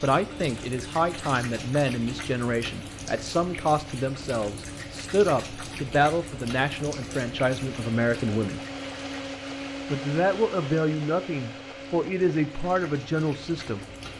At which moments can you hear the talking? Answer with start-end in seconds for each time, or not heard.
0.0-8.6, 9.9-13.8.